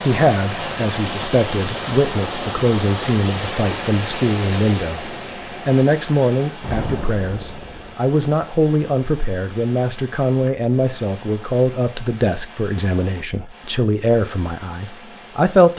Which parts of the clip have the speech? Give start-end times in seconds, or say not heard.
0.0-15.7.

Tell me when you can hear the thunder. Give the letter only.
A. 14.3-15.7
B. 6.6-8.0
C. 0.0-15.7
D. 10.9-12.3
B.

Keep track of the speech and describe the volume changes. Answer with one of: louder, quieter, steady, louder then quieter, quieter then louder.
steady.